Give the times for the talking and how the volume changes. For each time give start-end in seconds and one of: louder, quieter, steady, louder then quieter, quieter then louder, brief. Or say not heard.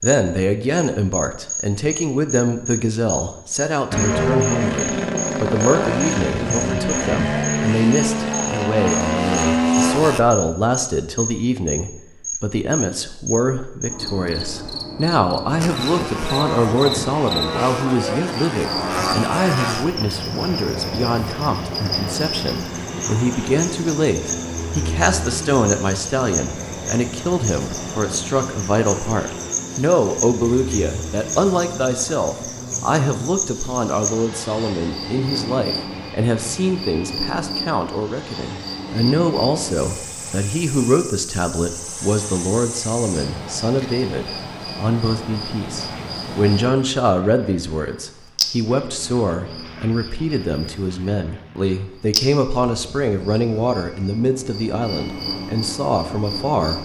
0.0-56.8 steady.